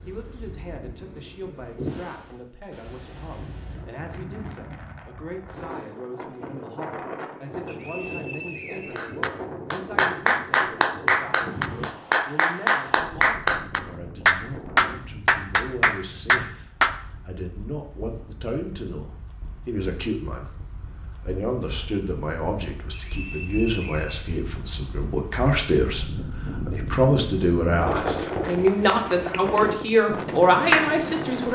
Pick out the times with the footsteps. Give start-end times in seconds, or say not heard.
not heard.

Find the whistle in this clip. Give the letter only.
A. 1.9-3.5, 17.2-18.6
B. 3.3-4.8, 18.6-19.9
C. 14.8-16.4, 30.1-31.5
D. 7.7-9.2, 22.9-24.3
D.